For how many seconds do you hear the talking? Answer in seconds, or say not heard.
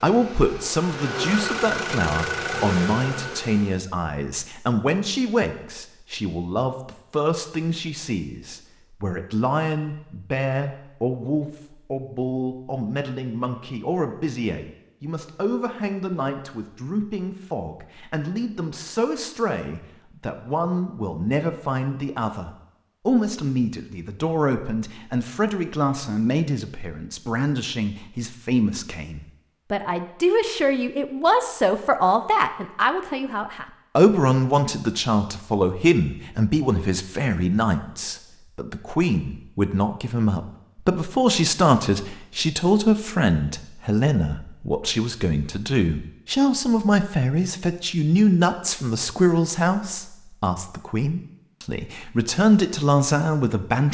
54 s.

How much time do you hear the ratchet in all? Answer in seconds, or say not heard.
not heard.